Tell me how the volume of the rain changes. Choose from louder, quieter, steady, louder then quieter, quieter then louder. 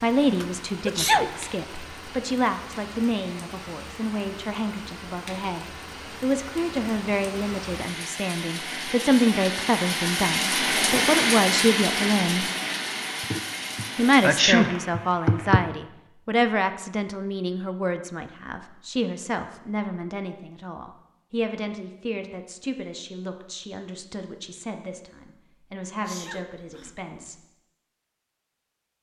louder then quieter.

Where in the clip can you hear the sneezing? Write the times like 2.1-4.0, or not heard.
0.4-1.4, 13.2-15.6, 26.1-27.1.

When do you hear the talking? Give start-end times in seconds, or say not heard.
0.0-12.4, 13.9-27.4.